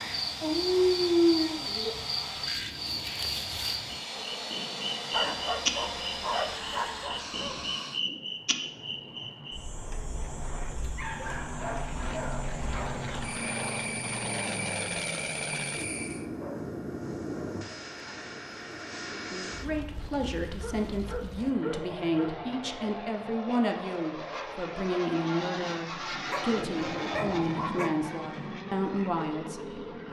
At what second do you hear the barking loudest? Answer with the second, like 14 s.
1 s.